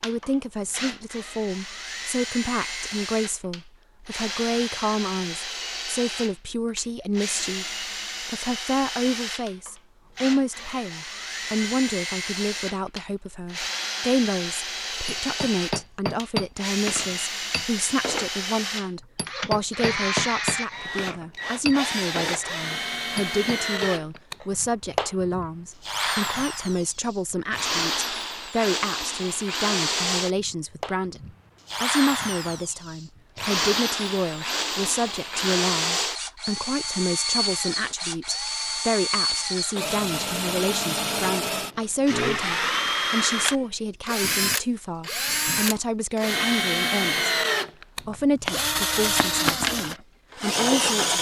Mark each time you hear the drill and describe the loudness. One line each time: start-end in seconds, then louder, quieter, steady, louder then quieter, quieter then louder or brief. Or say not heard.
0.0-51.1 louder.